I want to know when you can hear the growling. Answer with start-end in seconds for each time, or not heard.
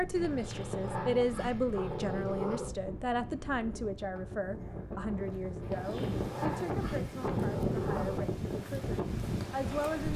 0.1-2.7, 5.6-8.3.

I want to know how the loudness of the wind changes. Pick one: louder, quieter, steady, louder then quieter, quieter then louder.
louder.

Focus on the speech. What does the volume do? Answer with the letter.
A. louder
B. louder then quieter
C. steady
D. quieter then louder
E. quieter
E.